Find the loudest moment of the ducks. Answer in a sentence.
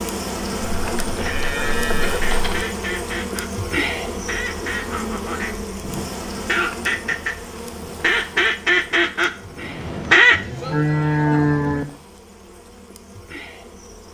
The volume of the ducks peaks at 10 seconds.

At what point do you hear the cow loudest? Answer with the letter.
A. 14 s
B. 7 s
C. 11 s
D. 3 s
C.